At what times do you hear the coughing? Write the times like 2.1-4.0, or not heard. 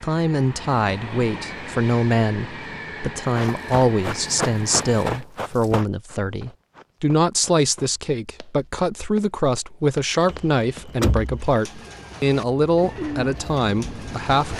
not heard.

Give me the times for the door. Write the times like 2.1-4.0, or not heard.
10.2-11.5.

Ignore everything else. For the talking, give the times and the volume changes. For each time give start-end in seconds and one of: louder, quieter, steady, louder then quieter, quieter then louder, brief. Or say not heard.
0.0-14.5 steady.